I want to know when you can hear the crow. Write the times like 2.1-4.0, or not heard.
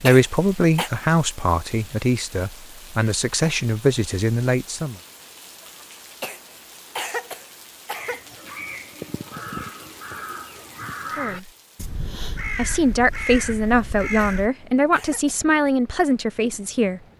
7.9-14.5.